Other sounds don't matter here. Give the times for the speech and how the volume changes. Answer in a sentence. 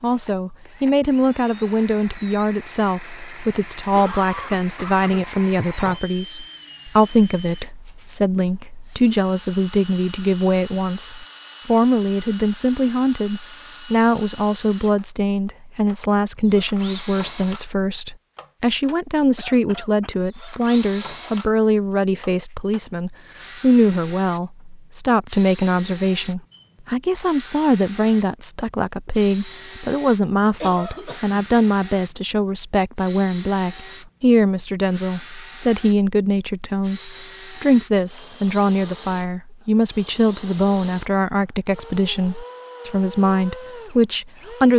The speech can be heard from 0.0 to 44.7 s, at a steady volume.